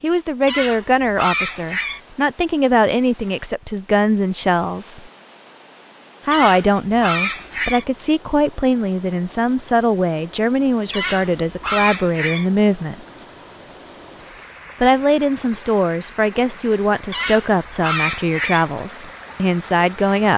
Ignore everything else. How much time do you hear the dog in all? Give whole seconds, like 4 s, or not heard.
6 s.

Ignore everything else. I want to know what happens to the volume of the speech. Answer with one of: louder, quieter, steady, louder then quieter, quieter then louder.
steady.